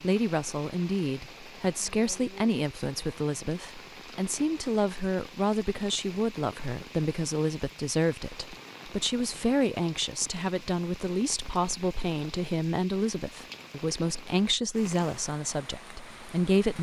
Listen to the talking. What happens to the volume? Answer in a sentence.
The volume of the talking stays about the same.